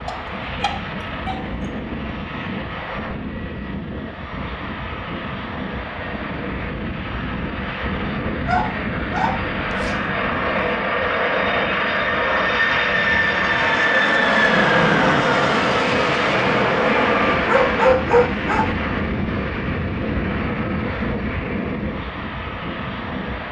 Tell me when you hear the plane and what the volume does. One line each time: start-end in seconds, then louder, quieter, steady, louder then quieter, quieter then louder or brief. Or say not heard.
0.0-23.4 louder then quieter.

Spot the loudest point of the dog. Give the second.
18 s.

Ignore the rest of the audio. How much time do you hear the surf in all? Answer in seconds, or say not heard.
not heard.